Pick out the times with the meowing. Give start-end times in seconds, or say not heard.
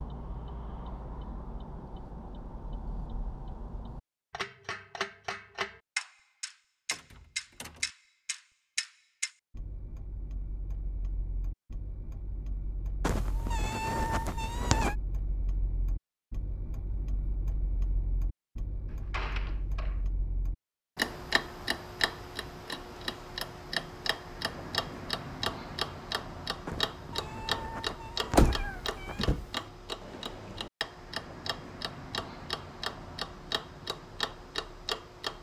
13.0-14.9, 26.6-29.4.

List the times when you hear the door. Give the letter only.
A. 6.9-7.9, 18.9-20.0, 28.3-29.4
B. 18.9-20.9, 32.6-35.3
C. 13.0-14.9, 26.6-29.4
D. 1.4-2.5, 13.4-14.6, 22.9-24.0
A.